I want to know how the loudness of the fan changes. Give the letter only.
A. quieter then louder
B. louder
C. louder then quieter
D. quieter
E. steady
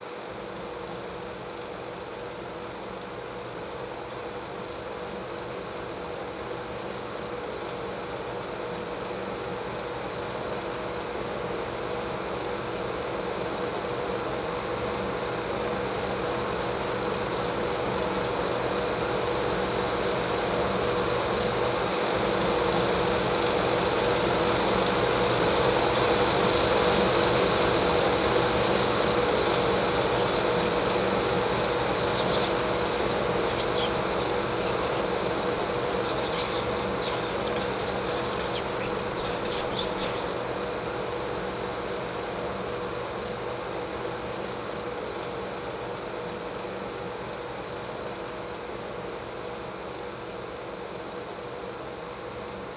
C.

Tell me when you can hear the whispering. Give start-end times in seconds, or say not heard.
29.3-40.4.